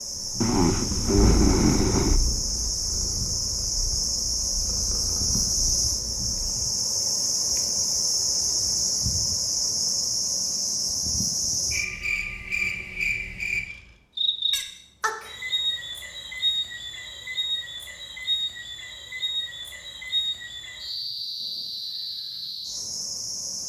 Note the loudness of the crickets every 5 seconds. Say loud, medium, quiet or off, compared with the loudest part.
loud, loud, loud, medium, medium.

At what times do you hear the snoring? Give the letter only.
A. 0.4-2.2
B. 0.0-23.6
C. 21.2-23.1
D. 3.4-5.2
A.